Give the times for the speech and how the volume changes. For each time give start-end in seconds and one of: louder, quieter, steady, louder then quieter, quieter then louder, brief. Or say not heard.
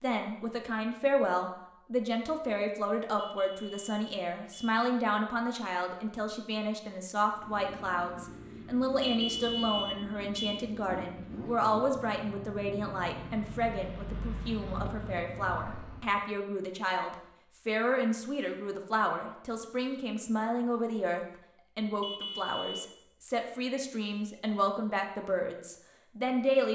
0.0-26.7 steady.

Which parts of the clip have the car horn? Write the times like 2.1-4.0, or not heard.
3.1-4.8, 9.0-10.7, 22.0-22.9.